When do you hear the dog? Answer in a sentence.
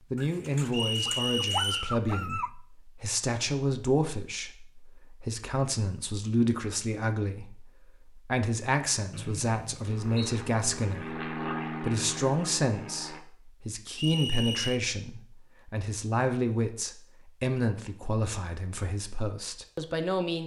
You can hear the dog from 0.1 to 2.5 s.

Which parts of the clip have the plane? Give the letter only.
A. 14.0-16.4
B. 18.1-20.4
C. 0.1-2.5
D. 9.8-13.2
D.